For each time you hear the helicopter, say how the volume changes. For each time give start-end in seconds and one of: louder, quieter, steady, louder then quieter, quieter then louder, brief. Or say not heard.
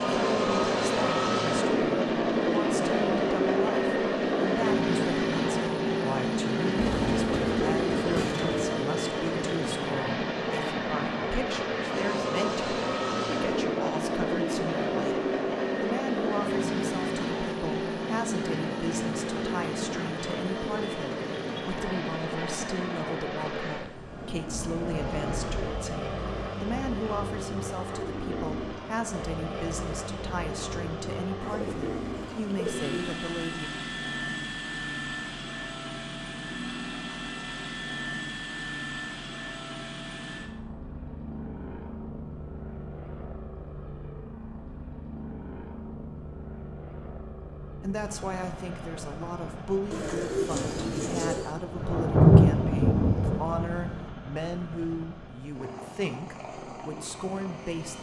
0.0-57.9 quieter.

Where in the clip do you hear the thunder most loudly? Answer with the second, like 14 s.
52 s.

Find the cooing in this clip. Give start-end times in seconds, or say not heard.
6.8-8.9, 31.4-33.0, 49.9-51.5.